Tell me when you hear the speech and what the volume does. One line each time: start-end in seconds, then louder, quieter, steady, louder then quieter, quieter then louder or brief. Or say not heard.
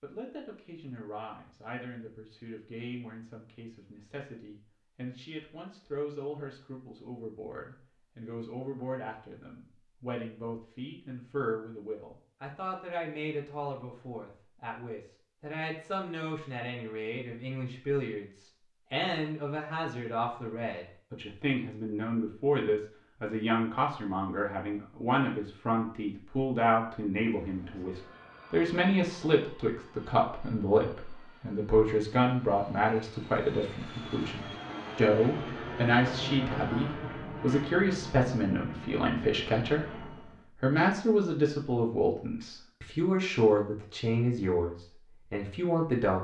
0.0-46.1 louder.